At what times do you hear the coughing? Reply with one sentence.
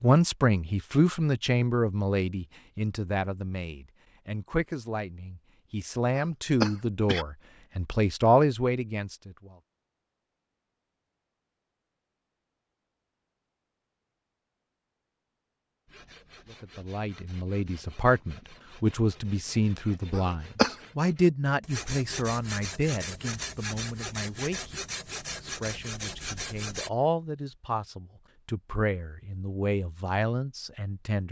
You can hear the coughing from 6.2 to 7.2 s and from 20.1 to 20.8 s.